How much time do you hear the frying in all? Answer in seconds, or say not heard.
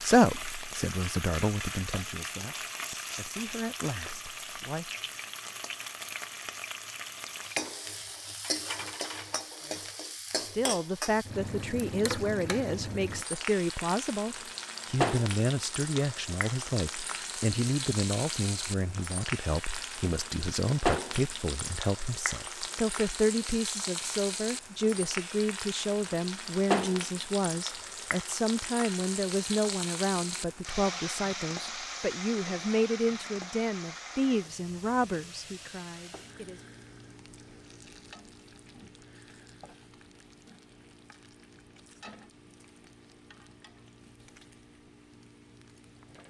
46 s.